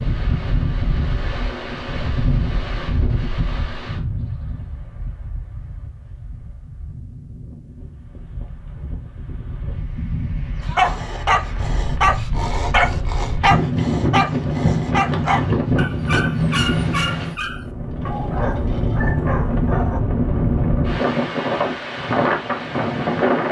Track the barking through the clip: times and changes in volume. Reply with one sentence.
You can hear the barking from 10.7 to 20.0 s, getting quieter.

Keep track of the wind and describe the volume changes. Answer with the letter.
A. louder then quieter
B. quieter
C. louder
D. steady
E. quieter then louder
E.